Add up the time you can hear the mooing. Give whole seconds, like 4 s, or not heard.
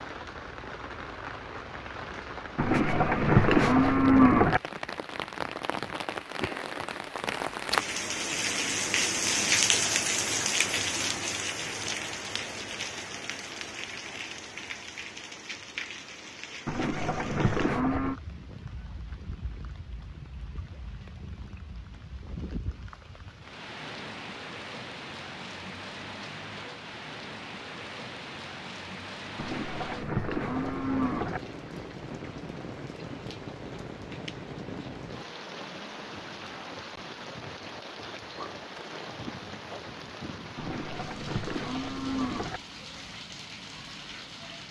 8 s.